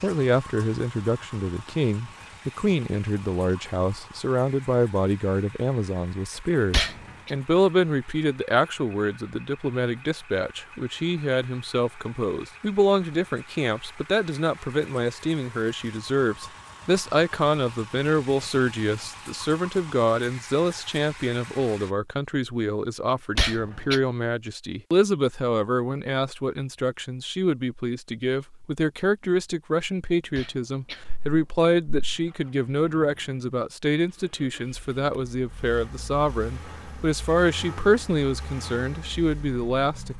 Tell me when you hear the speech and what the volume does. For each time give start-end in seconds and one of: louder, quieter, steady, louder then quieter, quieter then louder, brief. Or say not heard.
0.0-40.1 steady.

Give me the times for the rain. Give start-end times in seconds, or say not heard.
not heard.